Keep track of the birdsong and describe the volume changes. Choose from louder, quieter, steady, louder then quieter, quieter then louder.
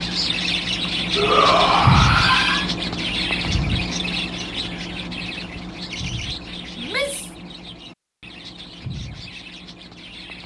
quieter.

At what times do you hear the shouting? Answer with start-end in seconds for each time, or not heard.
1.1-2.7, 6.8-7.3.